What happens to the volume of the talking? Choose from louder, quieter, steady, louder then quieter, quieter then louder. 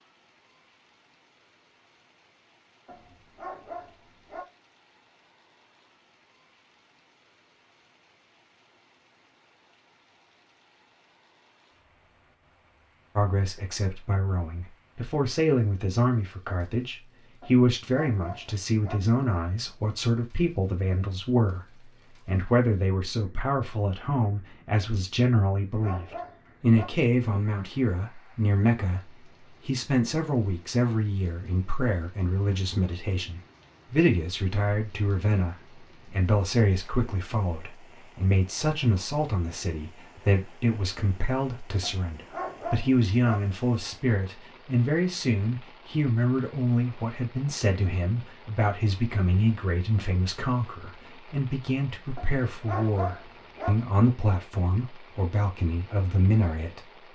steady.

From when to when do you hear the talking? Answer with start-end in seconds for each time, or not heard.
13.2-56.9.